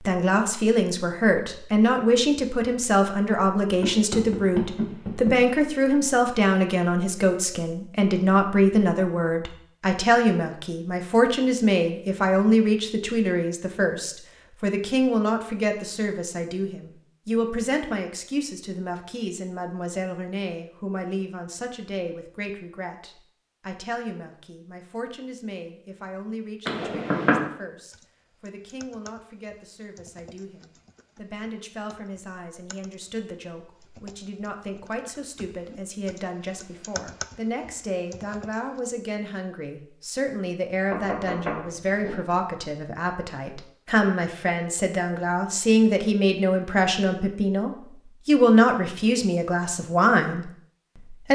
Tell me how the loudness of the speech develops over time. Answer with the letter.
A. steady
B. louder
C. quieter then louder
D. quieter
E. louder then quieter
C.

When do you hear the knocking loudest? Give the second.
27 s.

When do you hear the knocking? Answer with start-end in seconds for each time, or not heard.
3.8-5.3, 26.6-27.4, 40.9-42.1.